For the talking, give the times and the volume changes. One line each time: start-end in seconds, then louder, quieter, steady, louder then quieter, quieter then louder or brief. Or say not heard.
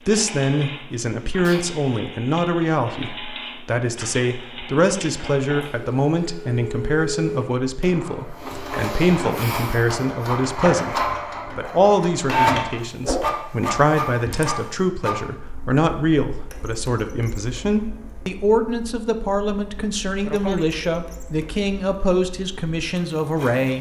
0.1-23.7 steady.